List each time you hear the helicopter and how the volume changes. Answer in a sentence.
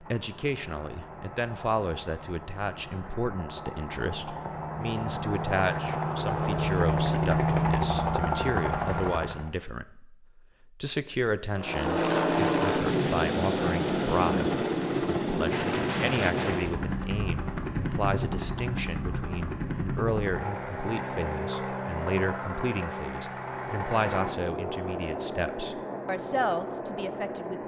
You can hear the helicopter from 0.0 to 9.6 s, getting louder; and from 11.6 to 27.6 s, getting quieter.